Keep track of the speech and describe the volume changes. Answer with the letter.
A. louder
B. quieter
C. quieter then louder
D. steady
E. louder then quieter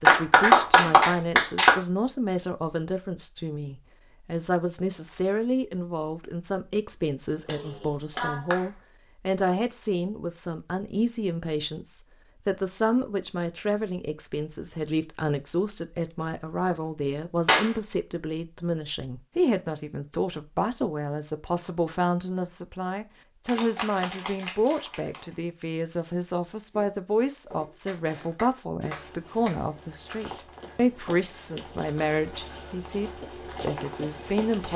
D.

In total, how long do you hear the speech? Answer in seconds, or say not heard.
35 s.